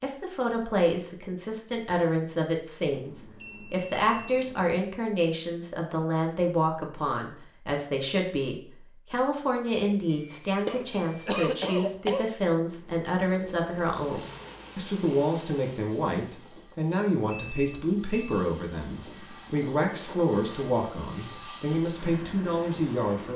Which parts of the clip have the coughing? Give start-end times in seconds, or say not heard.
10.7-12.3.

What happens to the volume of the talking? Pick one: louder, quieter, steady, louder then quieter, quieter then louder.
steady.